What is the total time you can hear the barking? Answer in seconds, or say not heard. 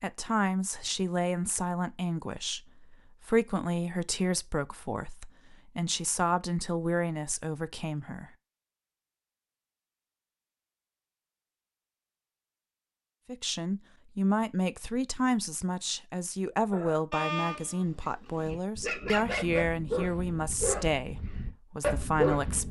6 s.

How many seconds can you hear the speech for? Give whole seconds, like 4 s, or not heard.
18 s.